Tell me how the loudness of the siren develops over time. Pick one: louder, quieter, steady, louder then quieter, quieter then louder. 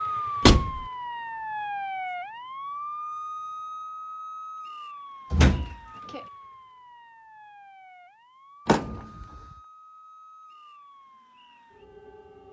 quieter.